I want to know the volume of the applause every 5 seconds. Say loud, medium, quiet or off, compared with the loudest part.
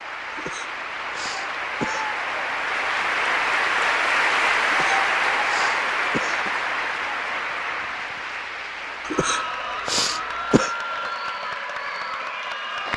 loud, loud, medium.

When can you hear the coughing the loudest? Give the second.
10 s.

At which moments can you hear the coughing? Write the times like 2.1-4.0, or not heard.
0.3-2.0, 4.7-6.5, 9.1-10.8.